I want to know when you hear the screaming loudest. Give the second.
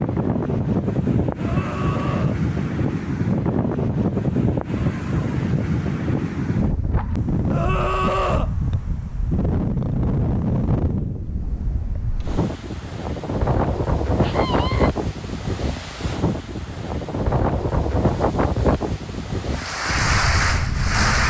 8 s.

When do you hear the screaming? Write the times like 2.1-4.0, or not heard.
1.4-2.4, 7.5-8.5, 14.2-14.9.